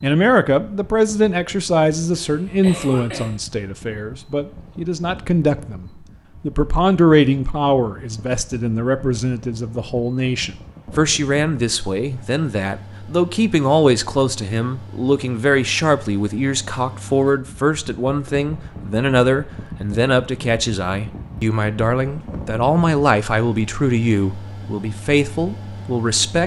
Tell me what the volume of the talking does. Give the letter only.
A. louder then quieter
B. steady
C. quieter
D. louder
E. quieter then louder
B.